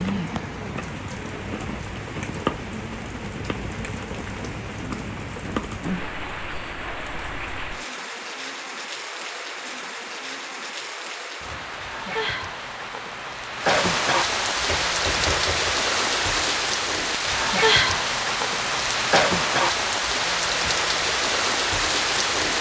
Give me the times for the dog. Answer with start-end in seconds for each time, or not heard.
not heard.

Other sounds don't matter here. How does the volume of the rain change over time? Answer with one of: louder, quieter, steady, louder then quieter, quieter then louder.
louder.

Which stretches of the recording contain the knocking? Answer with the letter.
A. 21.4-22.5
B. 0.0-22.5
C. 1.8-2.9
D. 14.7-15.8
D.